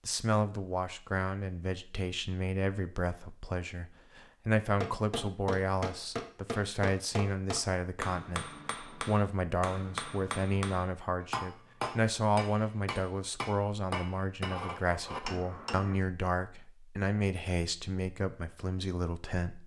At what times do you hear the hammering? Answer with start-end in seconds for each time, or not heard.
4.8-15.9.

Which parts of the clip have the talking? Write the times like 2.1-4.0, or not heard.
0.1-19.6.